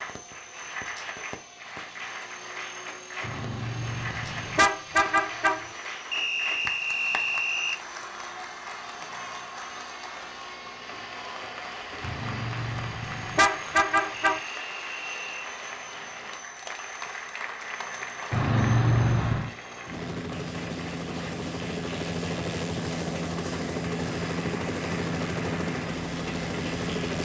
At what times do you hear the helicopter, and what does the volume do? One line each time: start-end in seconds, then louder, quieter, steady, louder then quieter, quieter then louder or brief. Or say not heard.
0.0-27.2 louder.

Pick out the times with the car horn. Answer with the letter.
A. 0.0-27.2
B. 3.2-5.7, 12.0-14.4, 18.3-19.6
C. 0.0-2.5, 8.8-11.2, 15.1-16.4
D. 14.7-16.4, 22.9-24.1
B.